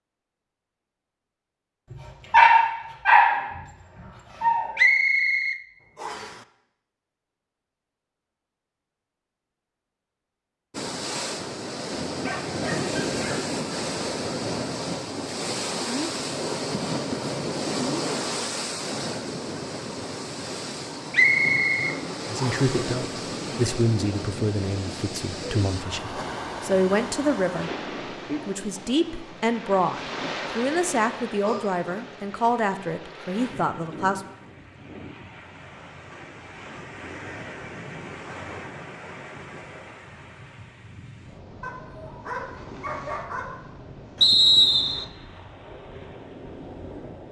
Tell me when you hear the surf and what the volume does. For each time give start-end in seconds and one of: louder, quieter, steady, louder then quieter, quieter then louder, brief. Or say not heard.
10.7-47.2 quieter.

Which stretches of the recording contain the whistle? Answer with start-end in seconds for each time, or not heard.
4.8-6.3, 21.1-22.6, 44.2-45.0.